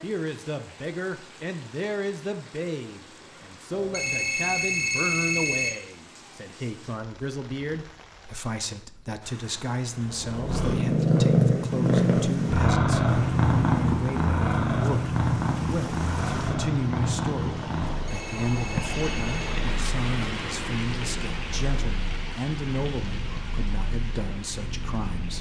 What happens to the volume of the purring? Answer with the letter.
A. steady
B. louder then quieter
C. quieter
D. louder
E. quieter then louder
C.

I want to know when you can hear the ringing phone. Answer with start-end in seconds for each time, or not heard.
3.7-5.8, 17.9-19.6.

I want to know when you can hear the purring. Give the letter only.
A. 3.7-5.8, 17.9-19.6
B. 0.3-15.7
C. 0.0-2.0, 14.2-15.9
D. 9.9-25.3
D.